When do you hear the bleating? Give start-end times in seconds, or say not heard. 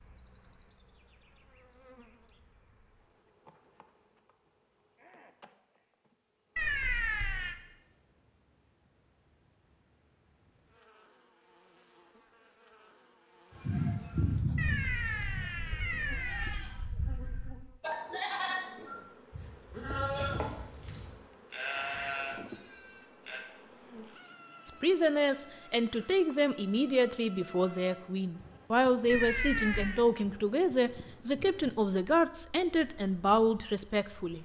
13.6-23.4.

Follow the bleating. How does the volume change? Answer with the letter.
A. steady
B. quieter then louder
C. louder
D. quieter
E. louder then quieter
B.